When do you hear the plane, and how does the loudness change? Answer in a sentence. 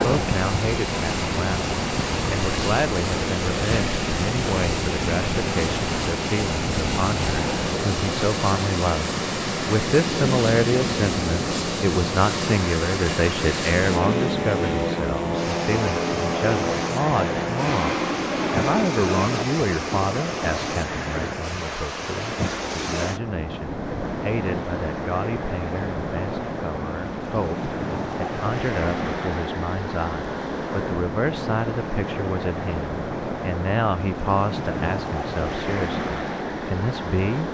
The plane can be heard from 0.0 to 19.4 s, at a steady volume.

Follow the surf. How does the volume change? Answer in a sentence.
The volume of the surf stays about the same.